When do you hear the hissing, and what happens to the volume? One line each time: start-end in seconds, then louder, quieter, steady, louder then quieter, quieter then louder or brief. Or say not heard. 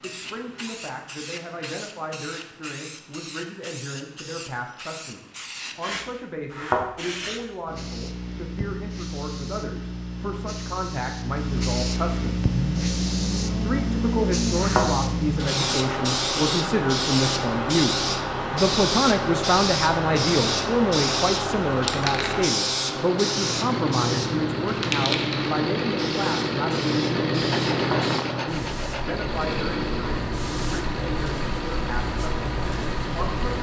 0.0-33.5 louder then quieter.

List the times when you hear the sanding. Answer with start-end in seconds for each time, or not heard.
27.5-29.3.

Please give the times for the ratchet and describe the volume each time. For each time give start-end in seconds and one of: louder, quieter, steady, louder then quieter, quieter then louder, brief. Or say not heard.
not heard.